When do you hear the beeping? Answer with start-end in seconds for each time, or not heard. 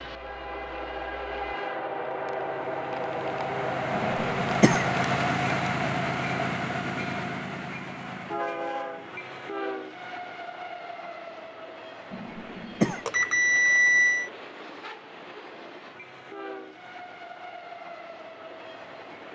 13.1-14.3.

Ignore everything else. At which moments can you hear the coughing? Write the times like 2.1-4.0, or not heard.
3.9-4.9, 12.1-13.1.